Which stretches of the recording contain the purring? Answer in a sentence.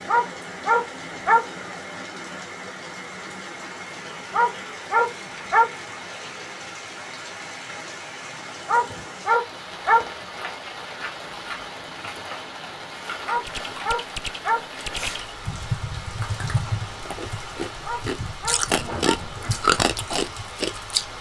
The purring can't be heard in this clip.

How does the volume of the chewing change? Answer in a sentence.
The volume of the chewing goes up.